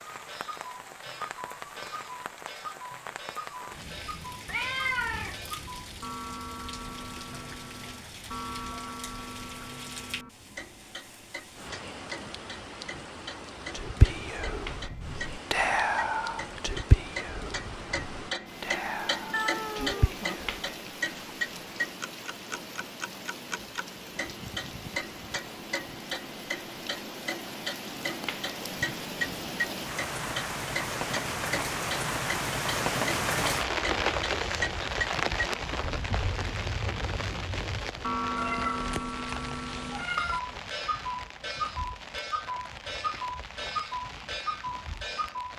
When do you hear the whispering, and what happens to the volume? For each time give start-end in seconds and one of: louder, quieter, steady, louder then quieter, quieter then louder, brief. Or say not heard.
13.7-20.6 louder then quieter.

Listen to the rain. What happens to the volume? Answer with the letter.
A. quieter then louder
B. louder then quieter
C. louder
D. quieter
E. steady
B.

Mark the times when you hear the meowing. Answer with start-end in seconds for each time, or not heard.
4.5-5.4, 19.3-20.4, 38.4-40.4.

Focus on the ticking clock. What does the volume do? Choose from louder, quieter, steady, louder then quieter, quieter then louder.
louder.